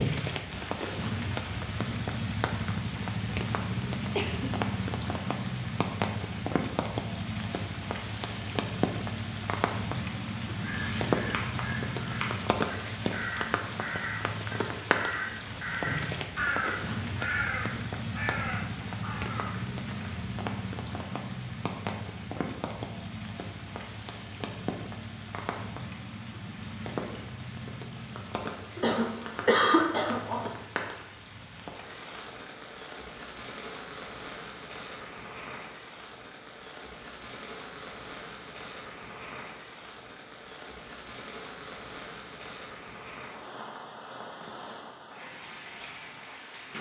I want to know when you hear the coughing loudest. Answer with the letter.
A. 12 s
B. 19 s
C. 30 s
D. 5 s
C.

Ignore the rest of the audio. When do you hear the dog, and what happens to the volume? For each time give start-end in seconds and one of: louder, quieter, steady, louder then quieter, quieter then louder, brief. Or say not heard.
not heard.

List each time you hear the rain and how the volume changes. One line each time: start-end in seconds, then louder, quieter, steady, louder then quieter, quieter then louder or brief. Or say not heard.
0.0-46.7 quieter.